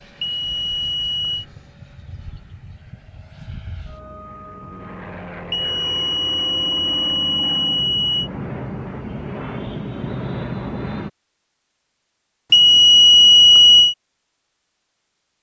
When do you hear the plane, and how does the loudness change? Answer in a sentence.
You can hear the plane from 0.0 to 11.1 s, getting louder.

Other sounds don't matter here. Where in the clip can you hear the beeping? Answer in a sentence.
You can hear the beeping from 0.2 to 1.4 s, from 5.5 to 8.3 s and from 12.5 to 13.9 s.